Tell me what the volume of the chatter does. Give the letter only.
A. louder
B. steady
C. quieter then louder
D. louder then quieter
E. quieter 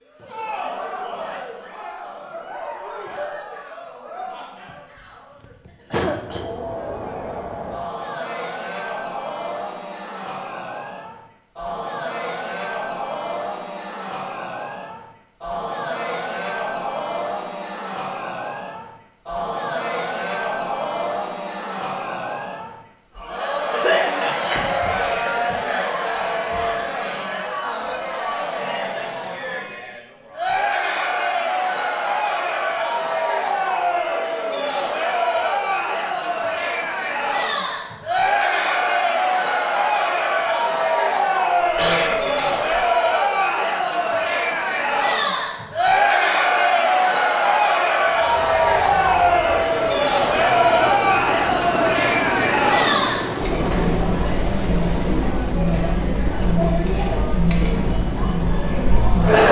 A.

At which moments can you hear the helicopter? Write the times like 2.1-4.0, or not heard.
48.0-59.4.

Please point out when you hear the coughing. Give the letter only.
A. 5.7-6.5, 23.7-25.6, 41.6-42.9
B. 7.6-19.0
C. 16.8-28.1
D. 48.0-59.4
A.